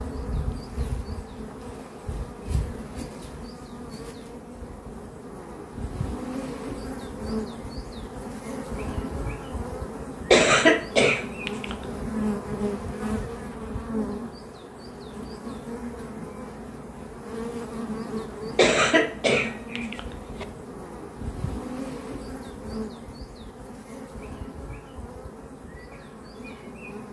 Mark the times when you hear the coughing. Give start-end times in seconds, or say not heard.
10.3-11.8, 18.6-20.4.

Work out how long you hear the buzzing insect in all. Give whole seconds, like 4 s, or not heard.
27 s.